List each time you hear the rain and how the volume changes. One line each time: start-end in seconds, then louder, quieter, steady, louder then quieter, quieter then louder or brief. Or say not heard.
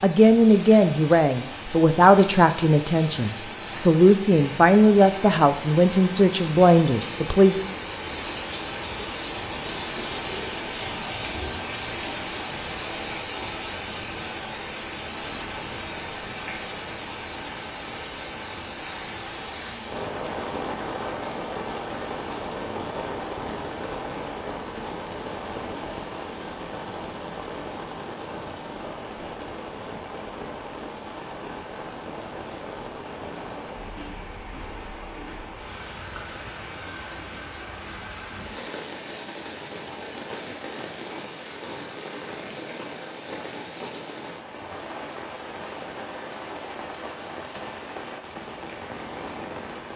0.0-49.9 quieter.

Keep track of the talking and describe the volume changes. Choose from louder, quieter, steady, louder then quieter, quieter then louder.
steady.